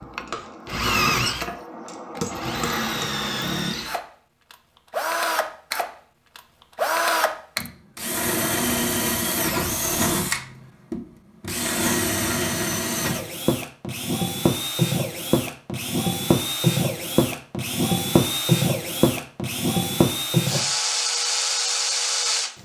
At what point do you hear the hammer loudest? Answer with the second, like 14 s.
2 s.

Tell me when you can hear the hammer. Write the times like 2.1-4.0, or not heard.
0.0-3.4.